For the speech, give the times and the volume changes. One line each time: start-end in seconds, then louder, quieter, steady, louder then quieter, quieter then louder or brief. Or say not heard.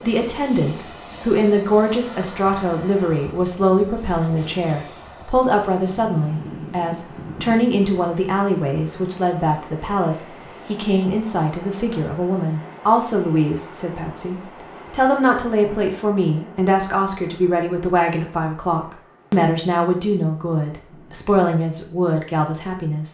0.0-23.0 steady.